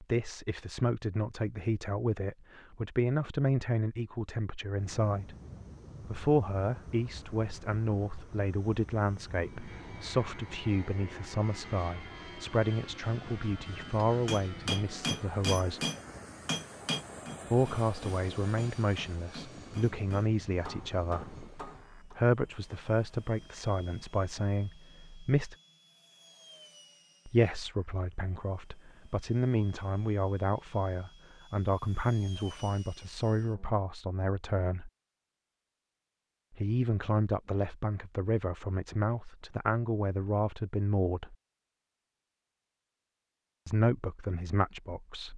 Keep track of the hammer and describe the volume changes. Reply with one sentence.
The loudness of the hammer goes down.